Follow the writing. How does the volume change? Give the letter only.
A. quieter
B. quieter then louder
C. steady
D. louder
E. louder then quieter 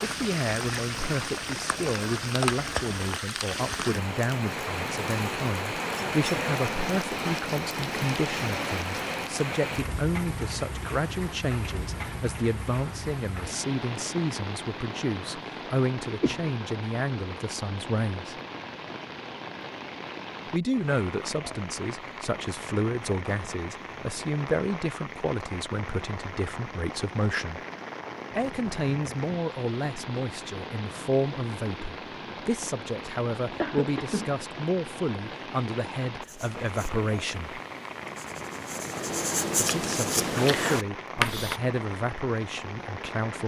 D.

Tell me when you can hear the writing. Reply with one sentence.
The writing can be heard from 36.2 to 41.6 s.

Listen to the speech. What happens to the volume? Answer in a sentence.
The loudness of the speech stays about the same.